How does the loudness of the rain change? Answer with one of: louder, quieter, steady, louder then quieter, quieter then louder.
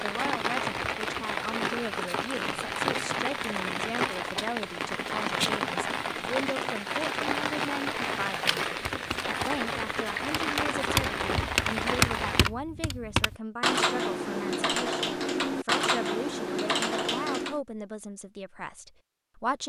steady.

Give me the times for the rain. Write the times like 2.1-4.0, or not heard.
0.0-12.5.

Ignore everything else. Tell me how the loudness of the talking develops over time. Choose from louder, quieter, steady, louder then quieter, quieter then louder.
steady.